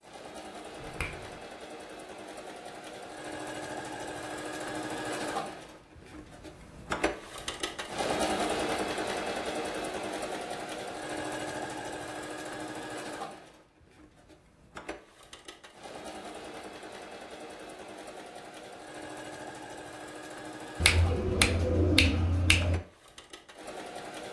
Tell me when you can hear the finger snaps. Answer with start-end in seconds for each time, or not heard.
0.8-1.4, 20.8-22.8.